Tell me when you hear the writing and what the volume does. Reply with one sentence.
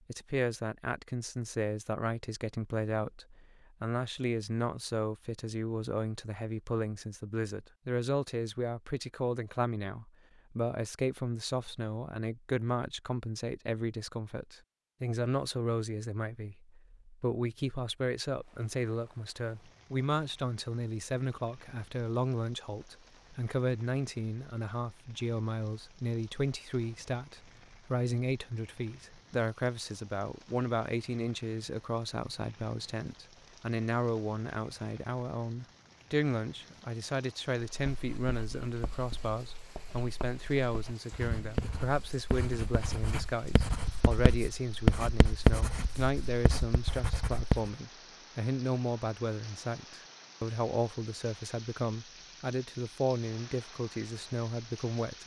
The writing can be heard from 37.8 to 47.7 s, getting louder then quieter.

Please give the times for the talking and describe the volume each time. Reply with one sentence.
You can hear the talking from 0.1 to 55.2 s, at a steady volume.